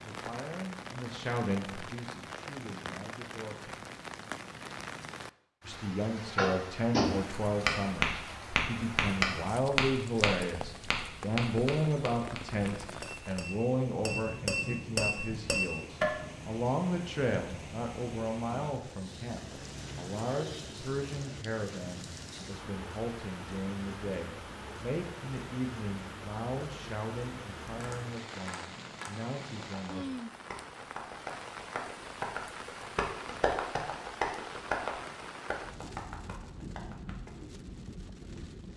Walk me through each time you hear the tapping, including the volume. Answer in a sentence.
The tapping can be heard from 6.3 to 16.1 s, getting quieter then louder; and from 27.7 to 37.3 s, getting louder then quieter.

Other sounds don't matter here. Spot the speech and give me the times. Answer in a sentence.
The speech can be heard from 0.0 to 3.7 s and from 5.7 to 30.1 s.